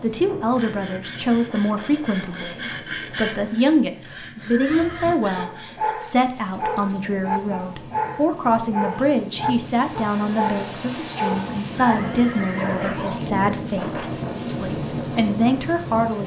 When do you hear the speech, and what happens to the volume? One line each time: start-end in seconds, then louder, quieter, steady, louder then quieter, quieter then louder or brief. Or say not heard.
0.0-16.2 steady.